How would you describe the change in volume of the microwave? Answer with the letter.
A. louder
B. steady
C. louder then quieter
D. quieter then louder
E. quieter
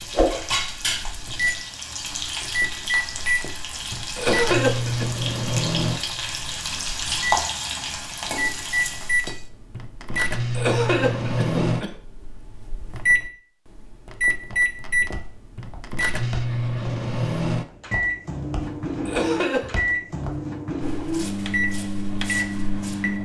B.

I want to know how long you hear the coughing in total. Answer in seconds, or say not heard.
3 s.